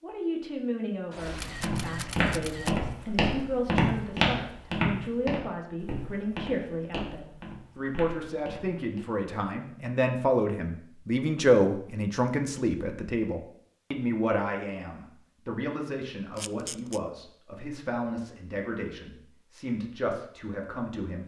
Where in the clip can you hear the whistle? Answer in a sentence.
You can't hear the whistle here.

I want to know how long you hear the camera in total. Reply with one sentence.
You can hear the camera for 2 seconds altogether.